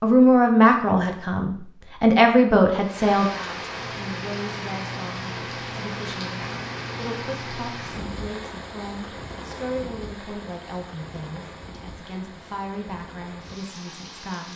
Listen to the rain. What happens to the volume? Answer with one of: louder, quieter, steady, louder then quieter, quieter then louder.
quieter.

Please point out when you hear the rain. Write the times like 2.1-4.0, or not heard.
2.8-14.5.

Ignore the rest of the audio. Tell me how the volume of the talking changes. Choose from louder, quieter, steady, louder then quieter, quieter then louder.
quieter.